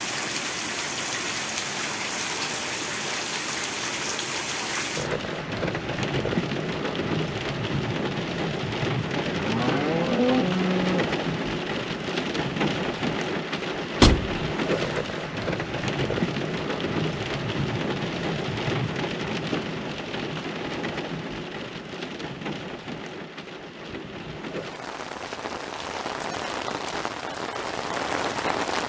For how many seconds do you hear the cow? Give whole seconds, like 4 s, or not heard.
2 s.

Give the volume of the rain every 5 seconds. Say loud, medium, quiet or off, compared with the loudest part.
loud, loud, loud, loud, medium, loud.